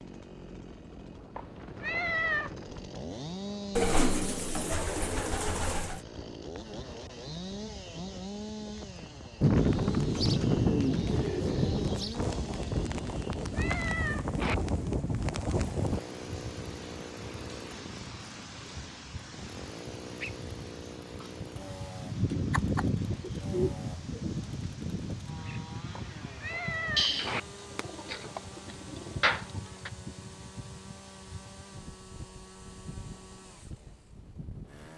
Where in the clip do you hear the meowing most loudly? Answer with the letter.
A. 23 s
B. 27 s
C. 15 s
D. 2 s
D.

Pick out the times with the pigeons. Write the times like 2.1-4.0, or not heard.
3.8-6.0, 9.4-12.2, 22.3-24.3, 26.9-29.9.